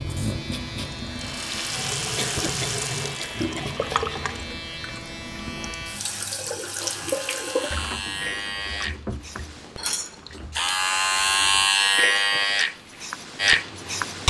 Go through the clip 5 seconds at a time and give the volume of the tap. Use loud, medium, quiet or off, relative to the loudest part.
loud, loud, quiet.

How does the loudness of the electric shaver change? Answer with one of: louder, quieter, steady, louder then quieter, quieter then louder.
louder.